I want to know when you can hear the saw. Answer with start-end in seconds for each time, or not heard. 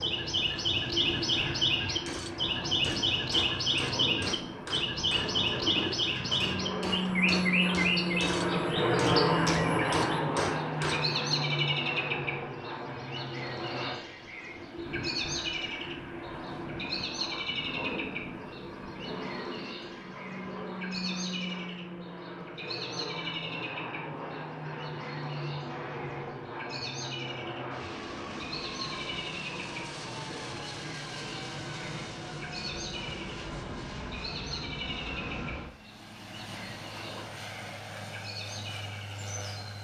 not heard.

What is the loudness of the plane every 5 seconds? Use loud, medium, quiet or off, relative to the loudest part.
medium, loud, medium, medium, medium, medium, medium, quiet.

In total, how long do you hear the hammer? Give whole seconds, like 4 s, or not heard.
9 s.